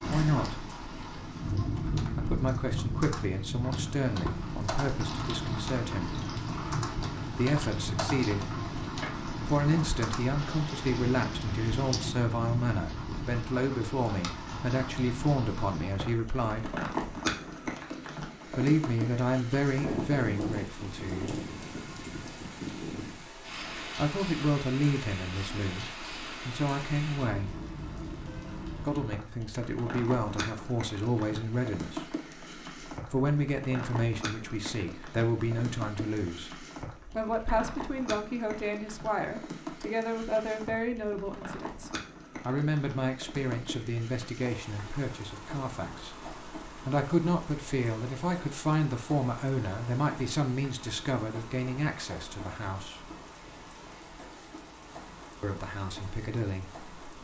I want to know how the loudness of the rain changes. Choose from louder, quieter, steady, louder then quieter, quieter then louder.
quieter.